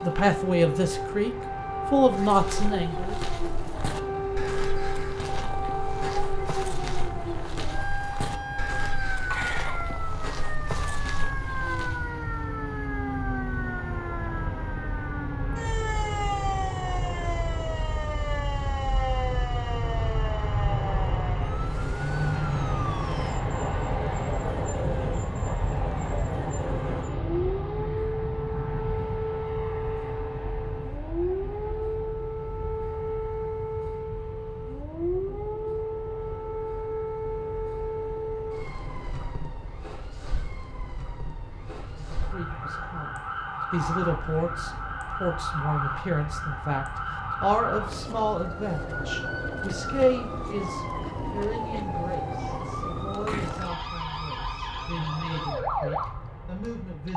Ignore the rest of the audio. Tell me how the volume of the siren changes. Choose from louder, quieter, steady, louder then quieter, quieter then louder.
steady.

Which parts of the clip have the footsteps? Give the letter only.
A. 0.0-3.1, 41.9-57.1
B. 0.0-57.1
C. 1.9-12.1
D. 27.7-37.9
C.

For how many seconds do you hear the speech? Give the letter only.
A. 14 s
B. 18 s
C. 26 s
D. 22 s
B.